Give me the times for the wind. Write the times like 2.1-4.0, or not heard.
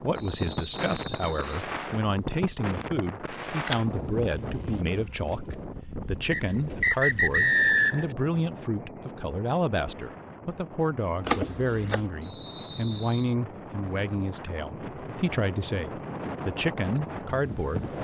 0.0-17.9.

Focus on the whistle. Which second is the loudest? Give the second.
8 s.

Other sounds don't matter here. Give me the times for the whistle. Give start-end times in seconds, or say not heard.
0.1-1.6, 6.3-8.1, 12.2-13.3.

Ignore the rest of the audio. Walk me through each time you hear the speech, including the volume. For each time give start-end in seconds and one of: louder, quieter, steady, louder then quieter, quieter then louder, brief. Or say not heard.
0.0-17.9 steady.